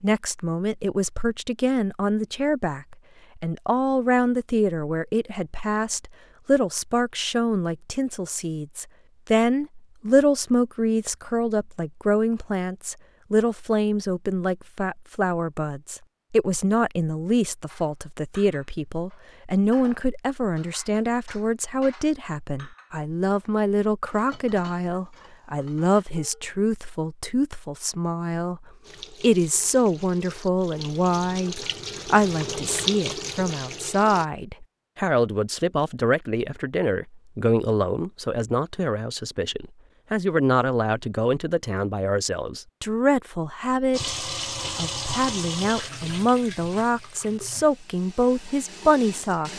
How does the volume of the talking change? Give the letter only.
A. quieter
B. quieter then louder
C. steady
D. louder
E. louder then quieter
C.